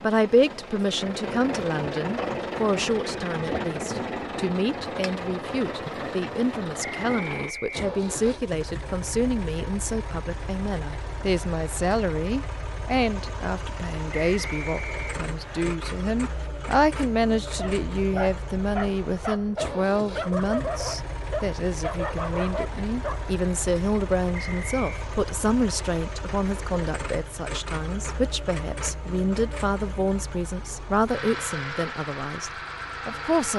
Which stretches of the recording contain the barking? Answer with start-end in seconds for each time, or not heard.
17.5-23.3.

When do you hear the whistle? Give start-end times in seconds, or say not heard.
6.8-8.3, 14.3-15.7, 24.3-25.1.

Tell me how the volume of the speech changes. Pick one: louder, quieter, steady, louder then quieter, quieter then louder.
steady.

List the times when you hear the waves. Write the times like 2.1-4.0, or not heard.
not heard.